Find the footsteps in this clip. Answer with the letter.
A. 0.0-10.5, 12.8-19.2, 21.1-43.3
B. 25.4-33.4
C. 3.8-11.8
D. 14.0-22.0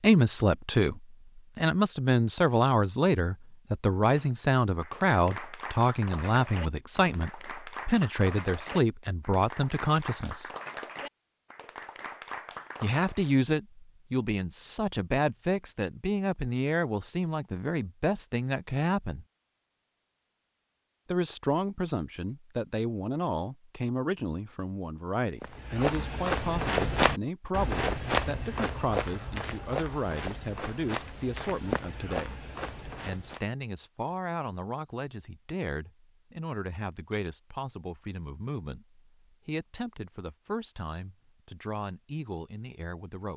B.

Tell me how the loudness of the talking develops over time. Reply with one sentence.
The loudness of the talking goes down.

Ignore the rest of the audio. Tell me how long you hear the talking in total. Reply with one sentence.
The talking can be heard for 39 seconds in total.